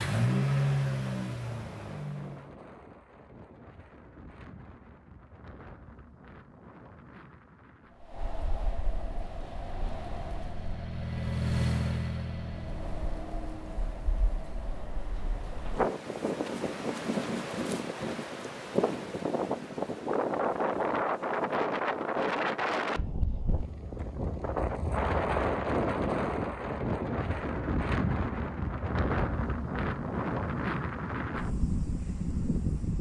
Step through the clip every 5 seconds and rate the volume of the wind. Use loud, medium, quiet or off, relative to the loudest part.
quiet, quiet, quiet, loud, loud, loud, loud.